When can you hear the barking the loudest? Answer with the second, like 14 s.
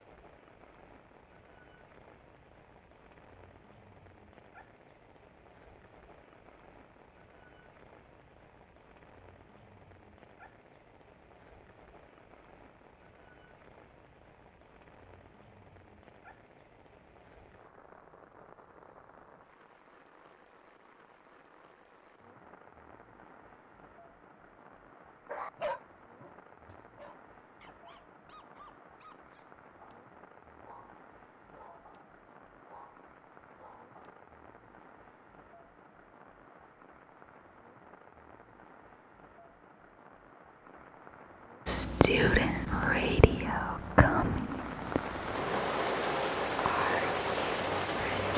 26 s.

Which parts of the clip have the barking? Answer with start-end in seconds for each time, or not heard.
25.2-34.2.